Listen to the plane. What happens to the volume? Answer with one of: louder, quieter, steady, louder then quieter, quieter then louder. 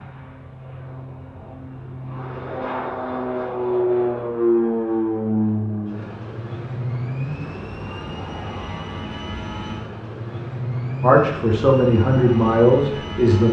louder then quieter.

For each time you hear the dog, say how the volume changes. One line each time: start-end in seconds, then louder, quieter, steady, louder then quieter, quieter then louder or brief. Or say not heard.
not heard.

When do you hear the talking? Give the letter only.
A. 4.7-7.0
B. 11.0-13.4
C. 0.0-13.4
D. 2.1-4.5
B.